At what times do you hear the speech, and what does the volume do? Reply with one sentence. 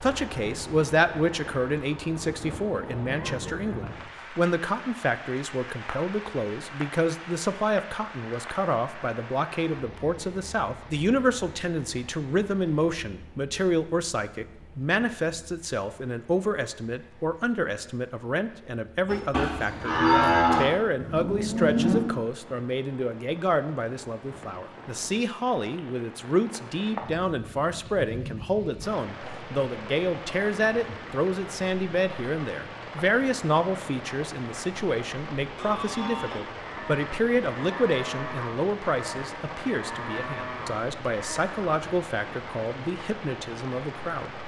You can hear the speech from 0.0 to 44.3 s, at a steady volume.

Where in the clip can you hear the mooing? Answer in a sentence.
You can hear the mooing from 19.1 to 22.1 s and from 35.5 to 41.7 s.